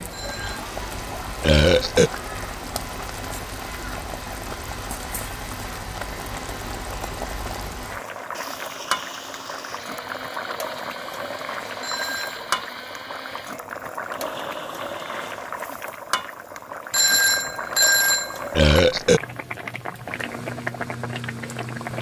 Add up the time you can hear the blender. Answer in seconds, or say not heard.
17 s.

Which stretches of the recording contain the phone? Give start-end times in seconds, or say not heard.
0.1-0.7, 11.8-12.4, 16.9-18.6.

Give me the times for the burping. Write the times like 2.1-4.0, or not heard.
1.4-2.1, 18.5-19.2.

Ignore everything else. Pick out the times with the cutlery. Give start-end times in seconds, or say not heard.
not heard.